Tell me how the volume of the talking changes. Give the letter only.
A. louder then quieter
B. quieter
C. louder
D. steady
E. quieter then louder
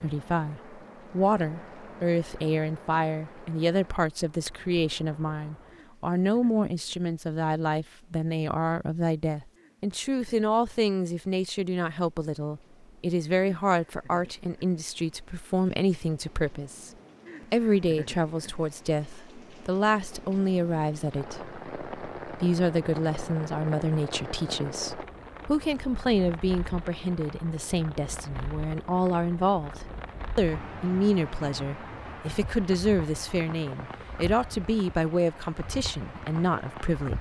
D.